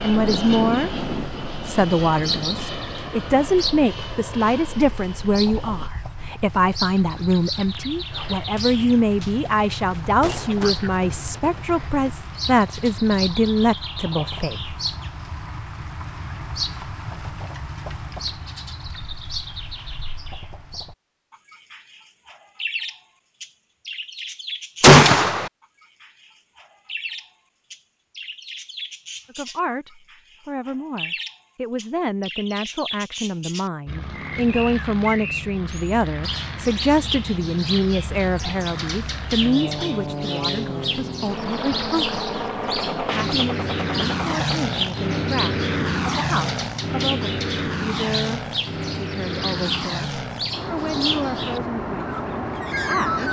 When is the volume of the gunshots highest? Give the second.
25 s.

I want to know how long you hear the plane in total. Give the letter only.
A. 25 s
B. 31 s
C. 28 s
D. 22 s
A.